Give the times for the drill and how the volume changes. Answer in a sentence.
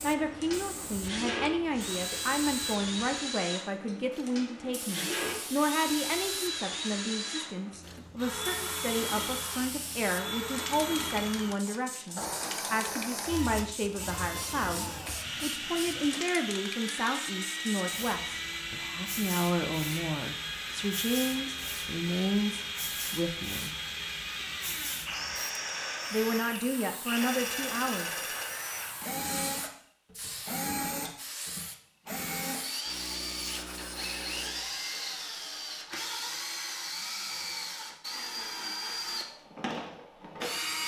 The drill can be heard from 0.0 to 40.8 s, at a steady volume.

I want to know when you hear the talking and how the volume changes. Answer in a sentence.
The talking can be heard from 0.0 to 23.8 s, at a steady volume; and briefly from 26.1 to 28.2 s.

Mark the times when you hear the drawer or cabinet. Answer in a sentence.
The drawer or cabinet can't be heard in this clip.